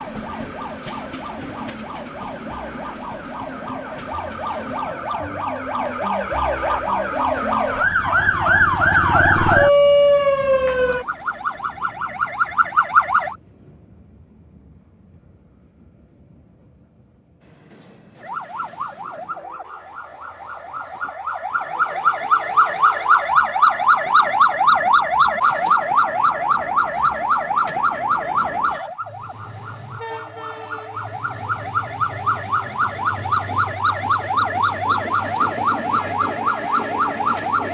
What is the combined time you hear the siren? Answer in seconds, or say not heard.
33 s.